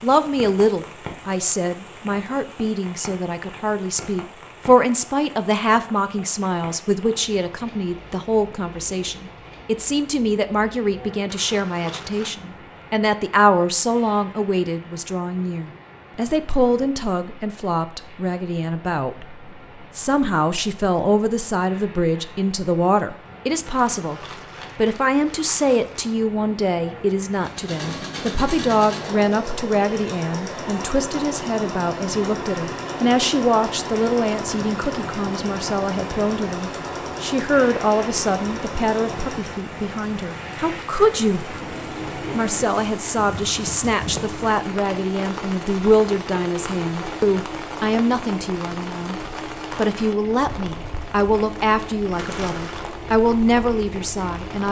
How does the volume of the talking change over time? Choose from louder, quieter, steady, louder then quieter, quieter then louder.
steady.